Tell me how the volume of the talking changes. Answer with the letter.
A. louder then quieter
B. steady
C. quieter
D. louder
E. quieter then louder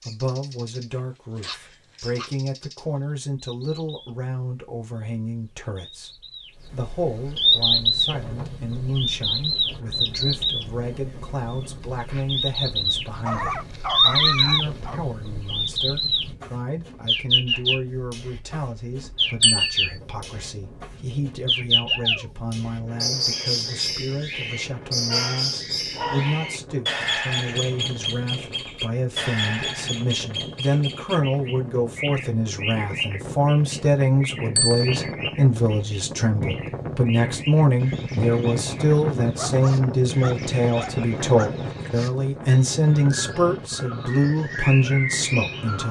D.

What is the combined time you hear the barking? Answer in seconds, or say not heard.
7 s.